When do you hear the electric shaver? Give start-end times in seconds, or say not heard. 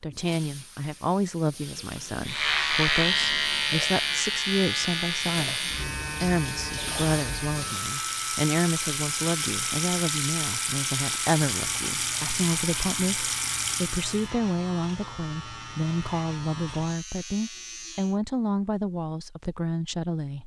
2.2-18.2.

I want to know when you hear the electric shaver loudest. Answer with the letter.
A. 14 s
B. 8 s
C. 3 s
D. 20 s
C.